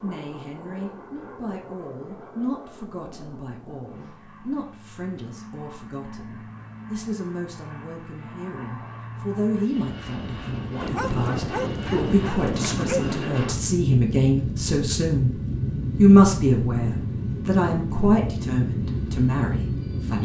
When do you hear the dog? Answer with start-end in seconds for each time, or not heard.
10.8-13.2.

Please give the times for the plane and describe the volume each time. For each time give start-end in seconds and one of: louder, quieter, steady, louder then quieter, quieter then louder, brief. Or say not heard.
0.0-20.1 louder.